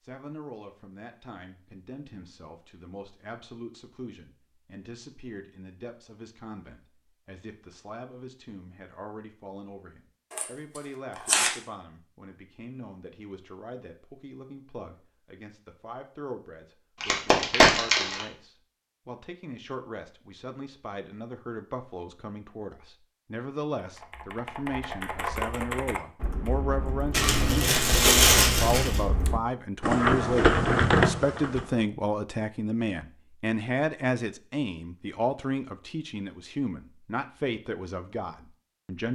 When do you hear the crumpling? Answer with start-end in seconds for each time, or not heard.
10.3-11.5, 17.0-18.2, 27.1-29.0.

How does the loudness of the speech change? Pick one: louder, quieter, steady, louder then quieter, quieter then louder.
louder.